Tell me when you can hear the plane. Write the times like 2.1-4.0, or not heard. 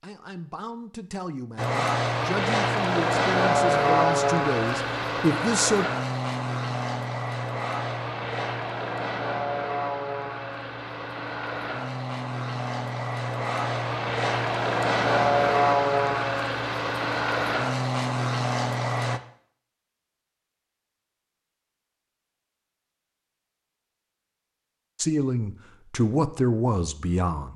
1.6-19.2.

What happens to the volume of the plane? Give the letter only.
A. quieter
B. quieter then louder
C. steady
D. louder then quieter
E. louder
B.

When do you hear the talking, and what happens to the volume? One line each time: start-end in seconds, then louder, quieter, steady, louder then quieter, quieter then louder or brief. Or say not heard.
0.0-5.8 louder
24.9-27.5 brief.